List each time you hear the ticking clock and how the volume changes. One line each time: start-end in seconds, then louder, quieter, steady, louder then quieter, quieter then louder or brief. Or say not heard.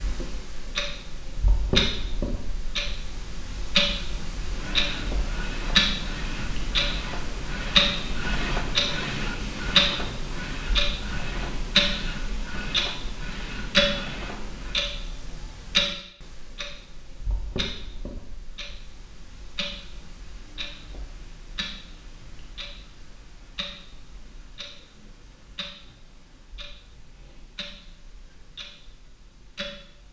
0.0-30.0 quieter.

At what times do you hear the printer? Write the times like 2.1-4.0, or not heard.
4.4-14.8.